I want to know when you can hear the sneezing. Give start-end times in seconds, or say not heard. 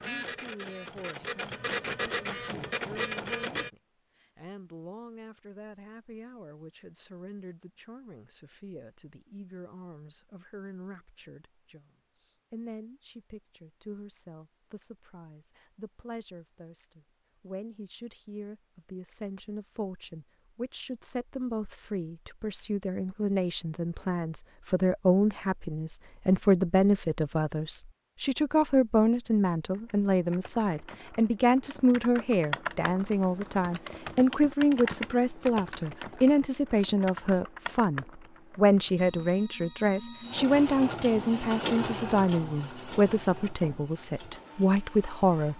not heard.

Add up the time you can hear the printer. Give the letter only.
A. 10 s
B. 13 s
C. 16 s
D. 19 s
A.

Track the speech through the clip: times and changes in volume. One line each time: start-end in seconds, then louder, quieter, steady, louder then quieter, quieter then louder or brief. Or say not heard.
0.0-45.5 louder.